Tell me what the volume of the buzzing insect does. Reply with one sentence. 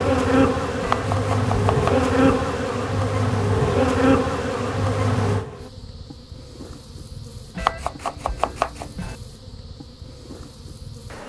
The volume of the buzzing insect goes down.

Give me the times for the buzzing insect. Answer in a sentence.
The buzzing insect can be heard from 0.0 to 11.2 s.